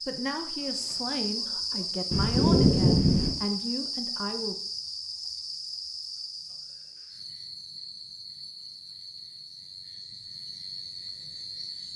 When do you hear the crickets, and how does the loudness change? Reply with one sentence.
You can hear the crickets from 0.0 to 11.9 s, getting quieter.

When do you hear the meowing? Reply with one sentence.
You can hear the meowing from 2.1 to 3.4 s.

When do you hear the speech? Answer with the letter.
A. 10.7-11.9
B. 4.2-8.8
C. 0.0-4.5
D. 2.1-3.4
C.